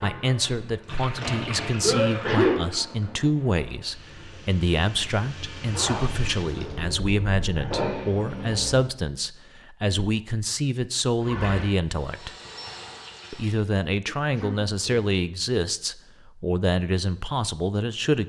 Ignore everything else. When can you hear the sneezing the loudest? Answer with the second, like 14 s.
2 s.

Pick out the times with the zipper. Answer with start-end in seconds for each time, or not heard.
5.7-6.8.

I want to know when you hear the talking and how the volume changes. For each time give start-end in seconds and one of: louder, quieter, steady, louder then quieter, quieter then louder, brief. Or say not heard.
0.0-12.3 steady
13.3-18.2 steady.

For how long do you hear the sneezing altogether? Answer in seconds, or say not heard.
2 s.